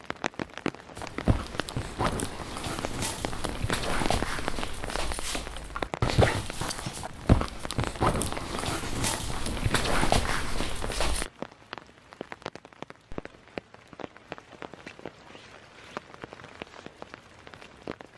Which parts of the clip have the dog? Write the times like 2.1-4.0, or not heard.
0.9-11.3.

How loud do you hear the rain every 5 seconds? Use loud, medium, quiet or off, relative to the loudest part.
loud, loud, loud, medium.